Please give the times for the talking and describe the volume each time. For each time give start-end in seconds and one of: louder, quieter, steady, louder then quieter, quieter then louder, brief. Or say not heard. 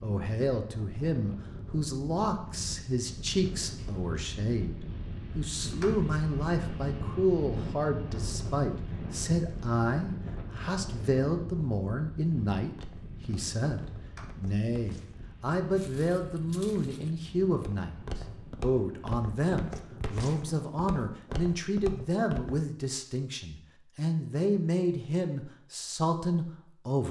0.0-27.0 steady.